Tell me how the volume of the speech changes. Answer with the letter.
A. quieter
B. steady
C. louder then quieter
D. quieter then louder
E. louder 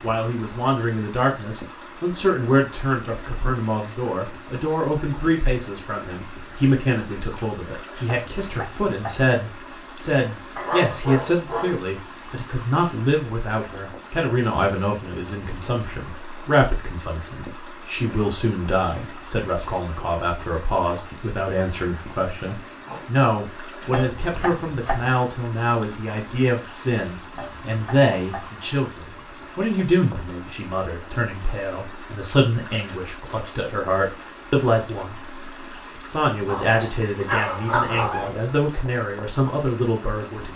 B.